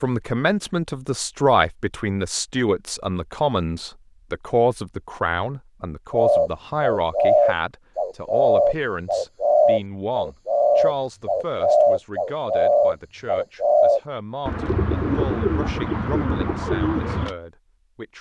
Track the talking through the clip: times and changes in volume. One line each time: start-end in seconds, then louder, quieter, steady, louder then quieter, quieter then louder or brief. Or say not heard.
0.0-18.1 quieter.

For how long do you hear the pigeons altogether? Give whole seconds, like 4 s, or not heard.
11 s.